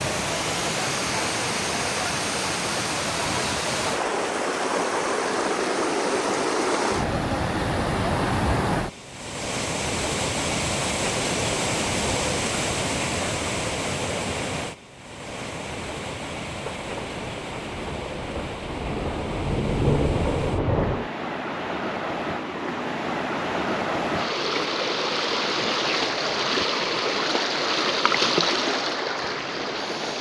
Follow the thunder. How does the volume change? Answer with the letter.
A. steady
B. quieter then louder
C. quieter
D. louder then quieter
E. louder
E.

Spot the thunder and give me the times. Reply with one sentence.
The thunder can be heard from 16.7 to 21.1 s.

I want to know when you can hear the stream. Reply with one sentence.
You can hear the stream from 0.0 to 30.1 s.